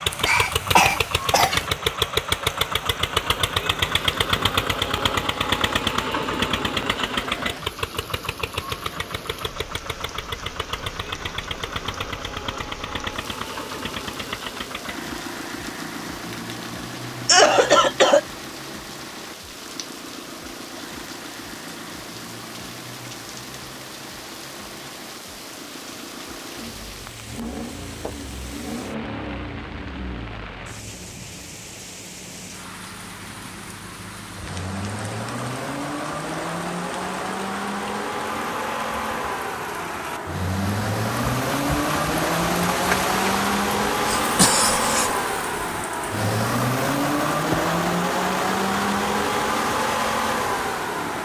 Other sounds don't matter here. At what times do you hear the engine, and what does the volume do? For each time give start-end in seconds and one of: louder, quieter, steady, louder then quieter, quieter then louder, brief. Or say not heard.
0.0-51.2 quieter then louder.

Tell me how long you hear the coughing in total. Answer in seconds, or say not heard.
3 s.